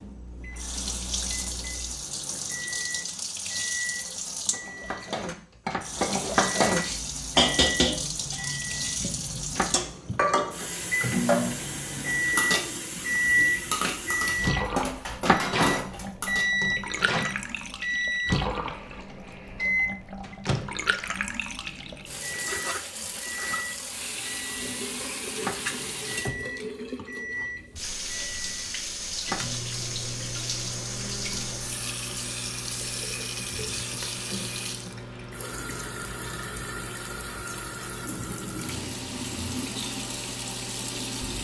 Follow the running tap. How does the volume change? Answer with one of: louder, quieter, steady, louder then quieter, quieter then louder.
steady.